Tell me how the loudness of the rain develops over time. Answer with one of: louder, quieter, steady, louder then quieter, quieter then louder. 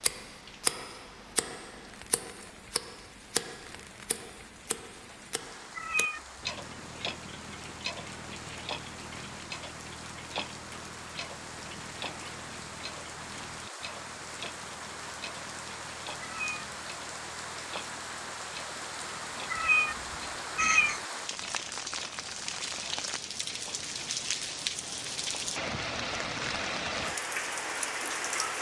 louder.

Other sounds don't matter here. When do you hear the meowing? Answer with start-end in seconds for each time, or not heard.
5.8-6.5, 16.2-16.7, 19.5-21.0.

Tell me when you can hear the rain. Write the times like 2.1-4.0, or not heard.
0.0-28.5.